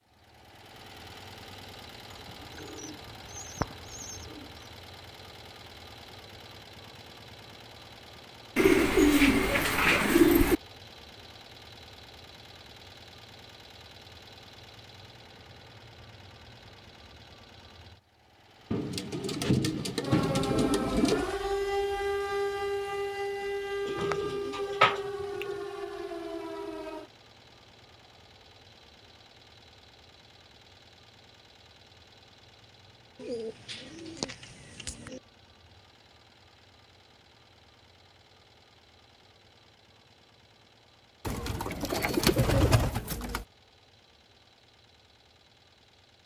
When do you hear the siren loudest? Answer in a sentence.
The loudest moment of the siren is at 22 seconds.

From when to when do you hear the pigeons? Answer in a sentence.
The pigeons can be heard from 2.5 to 4.4 s, from 8.6 to 10.6 s, from 18.7 to 21.2 s, from 23.9 to 25.6 s, from 33.2 to 35.2 s and from 41.2 to 43.5 s.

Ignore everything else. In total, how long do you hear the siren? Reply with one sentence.
You can hear the siren for 7 seconds altogether.